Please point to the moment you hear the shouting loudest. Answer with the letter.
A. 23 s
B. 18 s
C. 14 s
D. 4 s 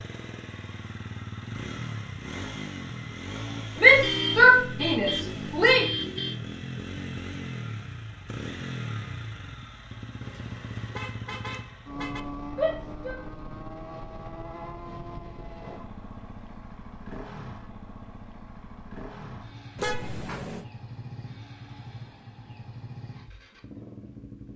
D.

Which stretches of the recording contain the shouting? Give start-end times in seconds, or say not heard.
3.8-5.8, 12.6-13.2.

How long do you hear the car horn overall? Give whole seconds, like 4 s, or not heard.
5 s.